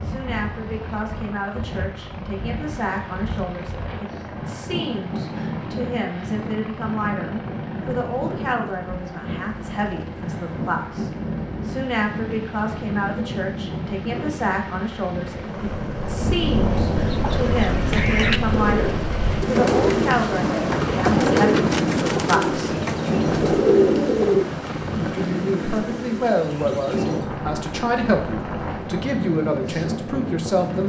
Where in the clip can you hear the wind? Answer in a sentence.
You can hear the wind from 0.0 to 30.8 s.